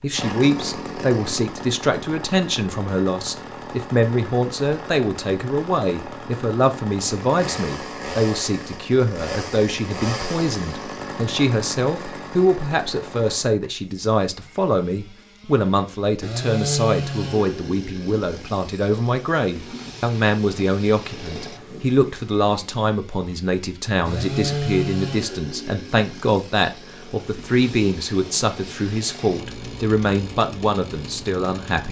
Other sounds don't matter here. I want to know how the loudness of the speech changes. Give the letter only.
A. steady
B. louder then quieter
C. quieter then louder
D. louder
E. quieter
A.